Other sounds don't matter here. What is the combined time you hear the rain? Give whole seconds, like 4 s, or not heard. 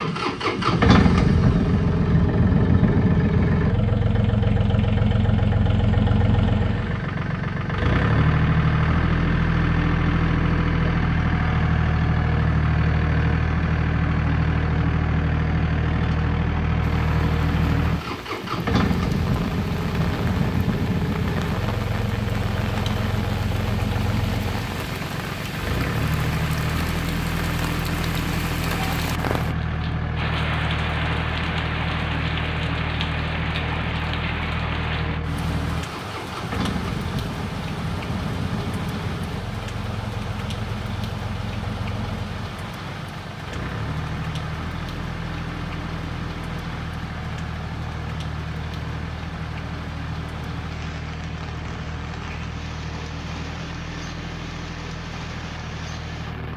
40 s.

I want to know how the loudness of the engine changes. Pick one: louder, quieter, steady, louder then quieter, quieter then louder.
quieter.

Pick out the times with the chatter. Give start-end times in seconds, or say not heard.
not heard.